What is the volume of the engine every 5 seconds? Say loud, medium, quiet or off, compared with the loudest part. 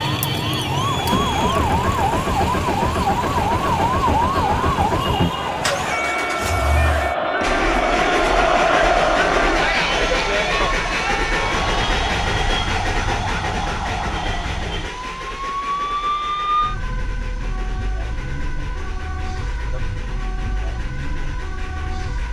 loud, loud, loud, quiet, quiet.